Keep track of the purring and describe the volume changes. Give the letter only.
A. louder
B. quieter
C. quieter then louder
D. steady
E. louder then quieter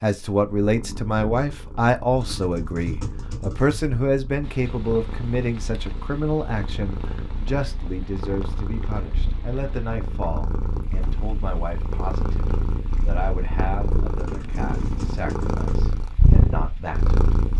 A.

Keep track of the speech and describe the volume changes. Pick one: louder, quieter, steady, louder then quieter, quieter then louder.
quieter.